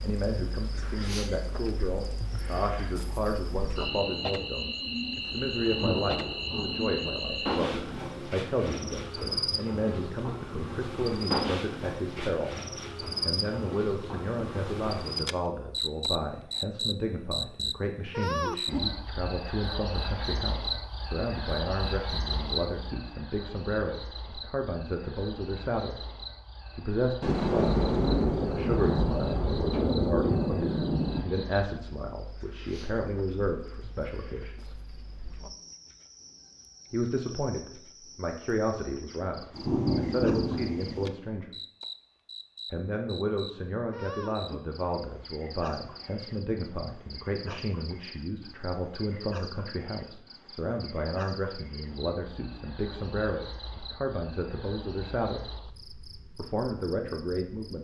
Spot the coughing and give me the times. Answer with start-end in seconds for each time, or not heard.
not heard.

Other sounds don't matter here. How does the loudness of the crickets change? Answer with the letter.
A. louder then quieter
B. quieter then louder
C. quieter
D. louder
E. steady
C.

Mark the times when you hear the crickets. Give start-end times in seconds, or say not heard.
0.0-57.7.